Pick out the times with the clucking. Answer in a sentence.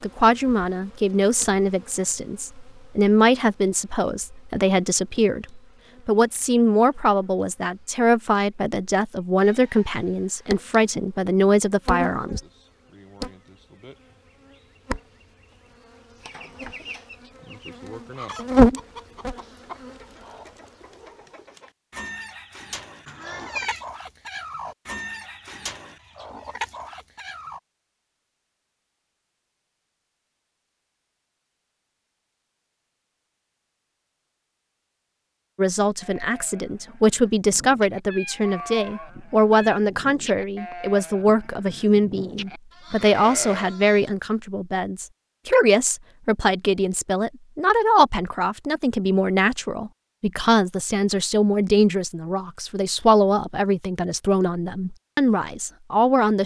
The clucking can be heard from 16.2 to 27.6 s.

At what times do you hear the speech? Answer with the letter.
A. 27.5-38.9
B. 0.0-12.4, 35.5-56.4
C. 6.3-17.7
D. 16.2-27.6
B.